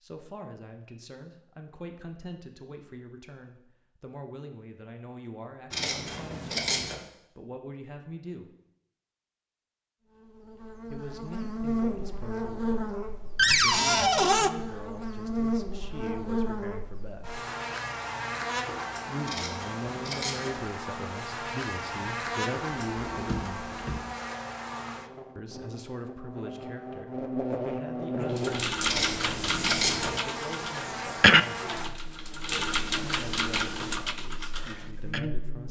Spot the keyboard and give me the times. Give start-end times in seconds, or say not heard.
28.4-35.2.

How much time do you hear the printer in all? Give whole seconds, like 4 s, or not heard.
not heard.